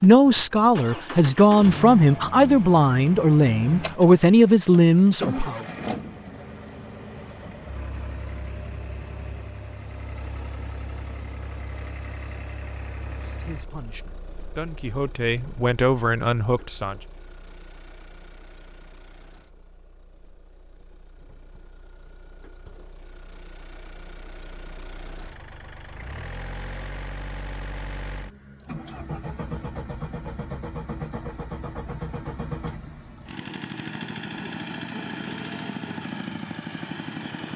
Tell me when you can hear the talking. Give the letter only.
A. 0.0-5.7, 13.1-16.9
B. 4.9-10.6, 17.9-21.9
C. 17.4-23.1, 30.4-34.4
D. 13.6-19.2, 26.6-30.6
A.